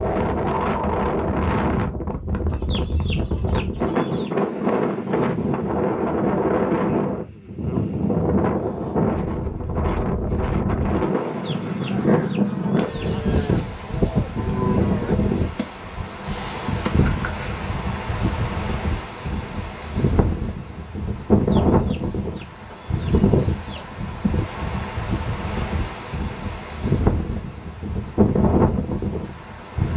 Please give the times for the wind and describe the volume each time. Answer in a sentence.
The wind can be heard from 0.0 to 29.9 s, at a steady volume.